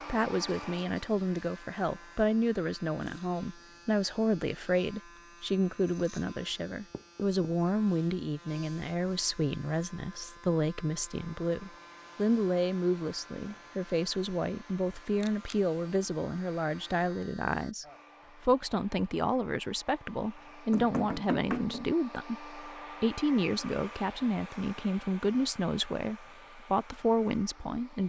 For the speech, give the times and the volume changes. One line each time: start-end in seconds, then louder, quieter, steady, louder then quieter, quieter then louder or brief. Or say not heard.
0.1-28.0 steady.